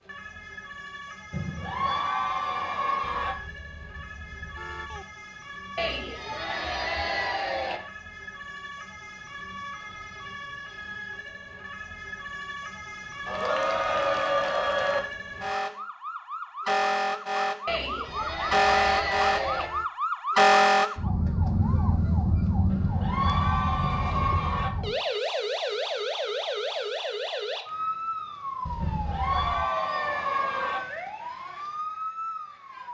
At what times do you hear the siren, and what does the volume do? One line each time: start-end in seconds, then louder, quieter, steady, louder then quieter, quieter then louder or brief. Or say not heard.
0.0-32.9 louder then quieter.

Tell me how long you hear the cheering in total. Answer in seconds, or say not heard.
12 s.